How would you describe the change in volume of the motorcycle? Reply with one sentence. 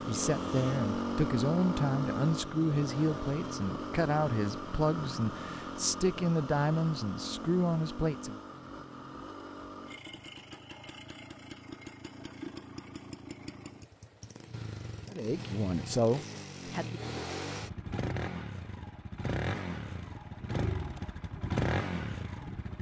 The loudness of the motorcycle goes down, then up.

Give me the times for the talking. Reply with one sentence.
The talking can be heard from 0.1 to 8.3 s and from 15.1 to 17.0 s.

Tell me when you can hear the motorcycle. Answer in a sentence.
The motorcycle can be heard from 0.0 to 22.7 s.